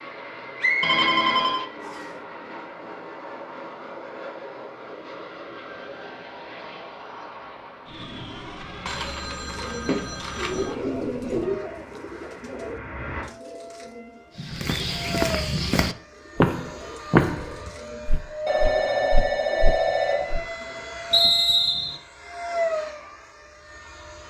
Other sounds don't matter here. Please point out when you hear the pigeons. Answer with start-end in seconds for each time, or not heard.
9.4-21.0.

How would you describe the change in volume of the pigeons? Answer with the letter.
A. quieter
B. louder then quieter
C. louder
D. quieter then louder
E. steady
A.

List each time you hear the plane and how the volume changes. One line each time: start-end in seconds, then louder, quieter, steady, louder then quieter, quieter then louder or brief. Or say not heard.
0.0-24.2 louder.